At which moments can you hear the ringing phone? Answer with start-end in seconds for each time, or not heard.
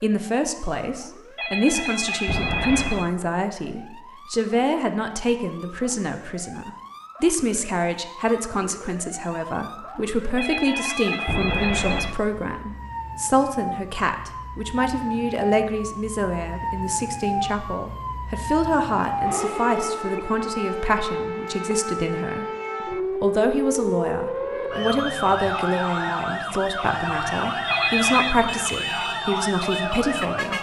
1.4-3.1, 10.3-12.2, 27.6-28.4.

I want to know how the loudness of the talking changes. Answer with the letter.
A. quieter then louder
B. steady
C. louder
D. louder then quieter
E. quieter
B.